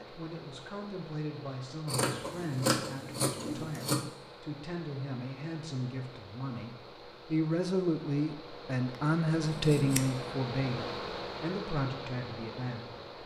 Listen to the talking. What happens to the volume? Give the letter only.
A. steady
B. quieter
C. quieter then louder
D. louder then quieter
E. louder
D.